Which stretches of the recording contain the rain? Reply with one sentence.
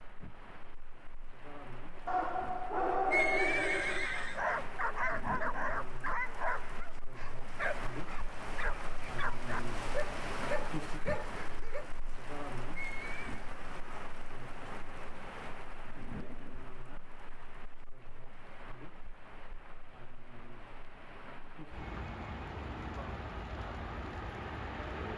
You can hear the rain from 0.0 to 25.1 s.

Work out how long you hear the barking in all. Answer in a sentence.
You can hear the barking for 10 seconds altogether.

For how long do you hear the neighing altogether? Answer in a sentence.
You can hear the neighing for 2 seconds altogether.